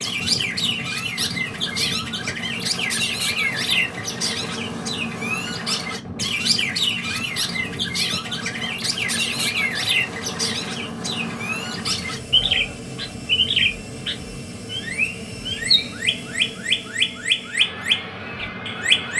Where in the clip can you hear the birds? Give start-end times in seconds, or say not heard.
0.0-19.1.